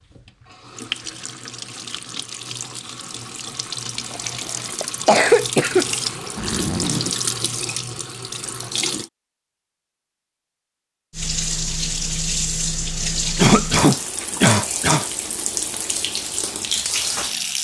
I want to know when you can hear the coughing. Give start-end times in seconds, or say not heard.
4.1-5.8, 13.3-15.1.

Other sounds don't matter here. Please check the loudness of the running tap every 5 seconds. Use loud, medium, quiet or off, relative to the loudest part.
medium, loud, loud, loud.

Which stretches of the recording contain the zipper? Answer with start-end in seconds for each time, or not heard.
6.3-7.2.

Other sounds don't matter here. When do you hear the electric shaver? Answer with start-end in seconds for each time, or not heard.
not heard.